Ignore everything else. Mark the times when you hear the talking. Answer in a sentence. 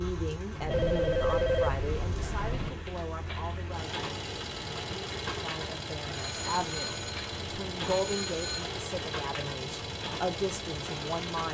You can hear the talking from 0.0 to 11.4 s.